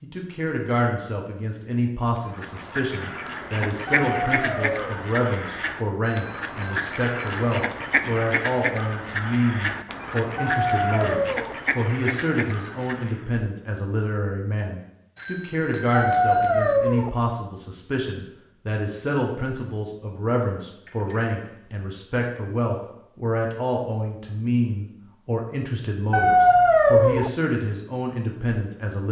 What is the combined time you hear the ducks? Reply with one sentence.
You can hear the ducks for 11 seconds altogether.